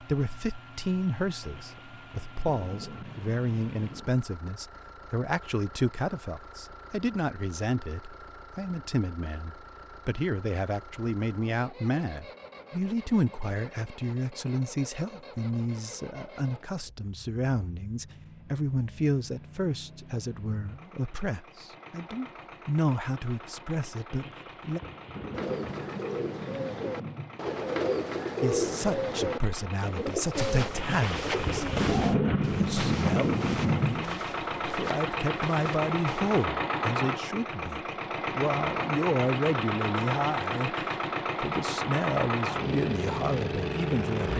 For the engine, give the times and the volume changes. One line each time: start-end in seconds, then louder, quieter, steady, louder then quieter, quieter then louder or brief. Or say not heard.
0.0-44.3 louder.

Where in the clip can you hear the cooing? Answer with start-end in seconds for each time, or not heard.
25.3-31.9.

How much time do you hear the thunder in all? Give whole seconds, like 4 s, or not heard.
9 s.